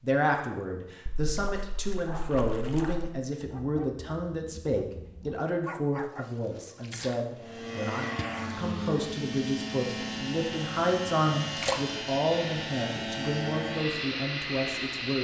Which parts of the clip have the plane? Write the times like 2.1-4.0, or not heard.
7.3-15.2.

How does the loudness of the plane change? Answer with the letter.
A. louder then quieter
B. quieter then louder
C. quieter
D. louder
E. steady
E.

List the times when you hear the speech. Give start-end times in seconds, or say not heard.
0.0-15.2.